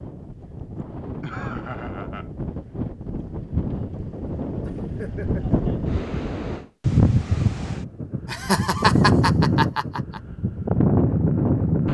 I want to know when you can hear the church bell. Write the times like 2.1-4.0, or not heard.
not heard.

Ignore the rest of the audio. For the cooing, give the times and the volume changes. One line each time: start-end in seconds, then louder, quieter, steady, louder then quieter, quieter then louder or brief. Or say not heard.
not heard.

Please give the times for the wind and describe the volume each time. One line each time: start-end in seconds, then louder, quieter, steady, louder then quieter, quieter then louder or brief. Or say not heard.
0.0-11.9 louder.